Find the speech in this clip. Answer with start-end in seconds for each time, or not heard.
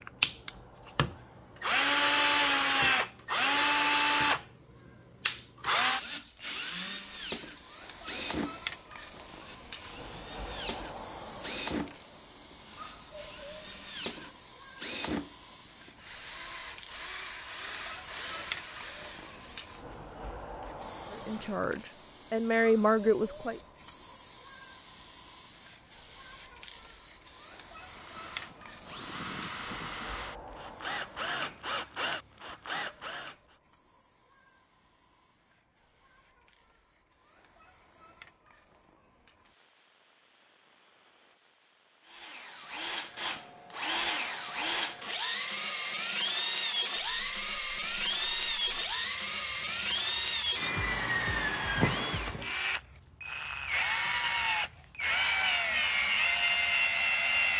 21.1-23.6.